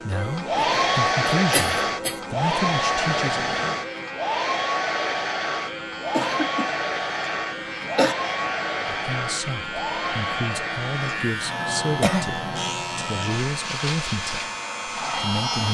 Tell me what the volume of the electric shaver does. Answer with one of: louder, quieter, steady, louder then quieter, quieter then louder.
louder.